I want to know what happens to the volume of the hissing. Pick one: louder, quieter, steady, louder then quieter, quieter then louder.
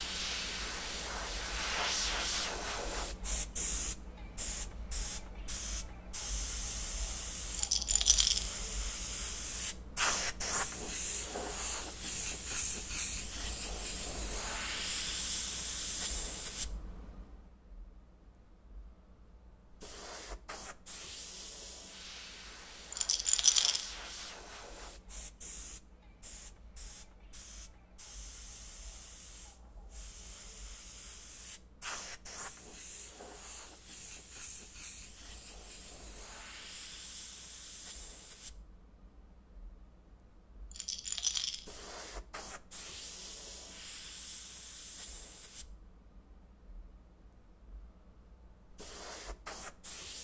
quieter.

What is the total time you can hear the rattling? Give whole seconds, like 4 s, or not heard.
3 s.